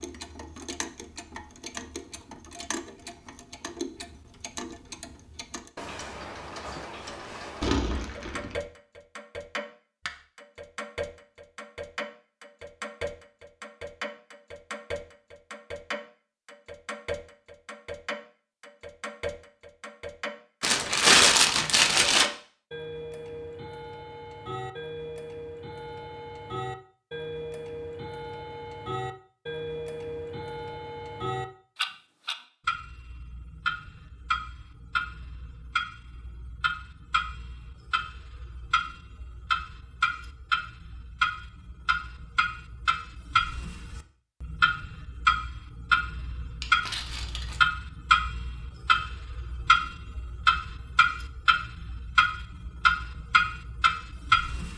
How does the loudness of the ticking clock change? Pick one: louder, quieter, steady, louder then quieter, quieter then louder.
louder.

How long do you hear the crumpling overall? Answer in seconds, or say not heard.
4 s.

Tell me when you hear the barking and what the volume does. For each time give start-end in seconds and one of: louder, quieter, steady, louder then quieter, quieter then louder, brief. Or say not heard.
not heard.